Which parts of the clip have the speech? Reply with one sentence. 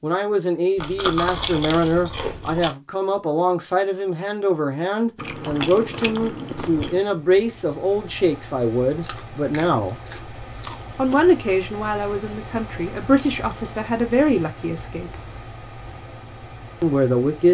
The speech can be heard from 0.0 to 10.0 s, from 10.9 to 15.2 s and from 16.8 to 17.4 s.